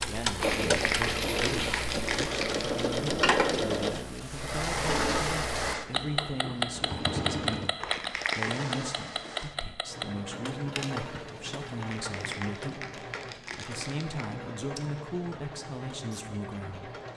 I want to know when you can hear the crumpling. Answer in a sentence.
You can hear the crumpling from 0.3 to 2.9 s, from 7.8 to 8.8 s and from 11.8 to 14.3 s.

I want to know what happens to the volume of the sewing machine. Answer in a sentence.
The volume of the sewing machine goes down.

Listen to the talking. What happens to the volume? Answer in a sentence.
The loudness of the talking stays about the same.